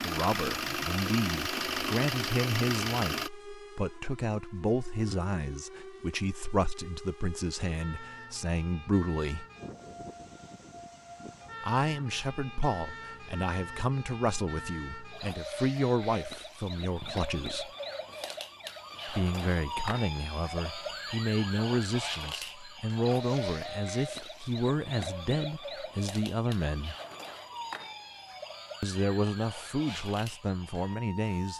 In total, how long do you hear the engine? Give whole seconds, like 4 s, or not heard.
3 s.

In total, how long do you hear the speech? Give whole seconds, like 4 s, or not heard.
26 s.